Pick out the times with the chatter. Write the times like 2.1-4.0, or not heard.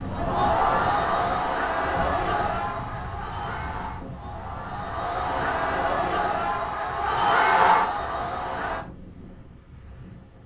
0.0-8.8.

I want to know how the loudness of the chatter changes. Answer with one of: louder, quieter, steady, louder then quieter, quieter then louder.
quieter then louder.